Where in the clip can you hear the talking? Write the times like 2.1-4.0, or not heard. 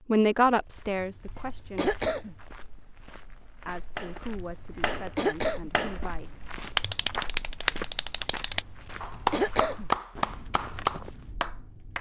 0.1-1.9, 3.6-6.4.